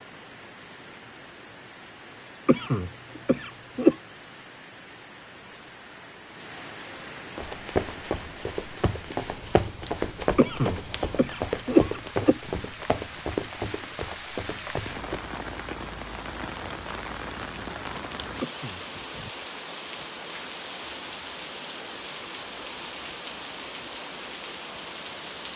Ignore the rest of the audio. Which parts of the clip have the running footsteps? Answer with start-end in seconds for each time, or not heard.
7.3-15.2.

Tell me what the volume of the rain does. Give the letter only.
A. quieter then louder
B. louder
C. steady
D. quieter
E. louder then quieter
B.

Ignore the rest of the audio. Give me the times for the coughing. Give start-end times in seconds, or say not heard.
2.5-4.0, 10.3-12.5, 18.4-18.9.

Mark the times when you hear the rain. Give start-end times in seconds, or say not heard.
0.0-25.5.